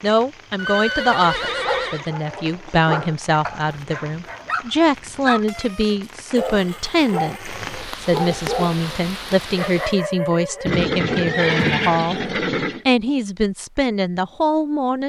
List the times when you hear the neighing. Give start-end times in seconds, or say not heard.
0.6-2.1, 6.3-8.0, 10.7-12.8.